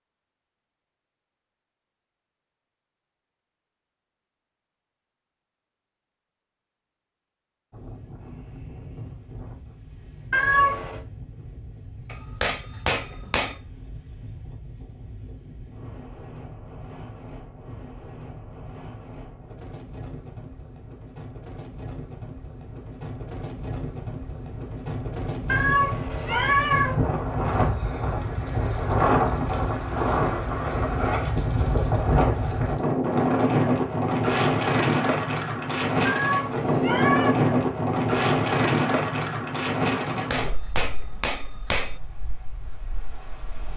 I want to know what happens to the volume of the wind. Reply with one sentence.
The loudness of the wind goes up.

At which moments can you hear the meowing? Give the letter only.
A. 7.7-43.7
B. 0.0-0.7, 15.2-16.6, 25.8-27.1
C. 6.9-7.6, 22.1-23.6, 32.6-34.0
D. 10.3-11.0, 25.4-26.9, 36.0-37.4
D.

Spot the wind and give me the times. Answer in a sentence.
The wind can be heard from 7.7 to 43.7 s.